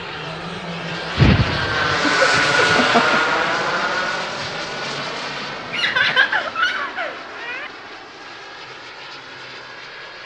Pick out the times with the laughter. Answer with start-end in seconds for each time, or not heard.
1.1-3.2, 5.7-7.7.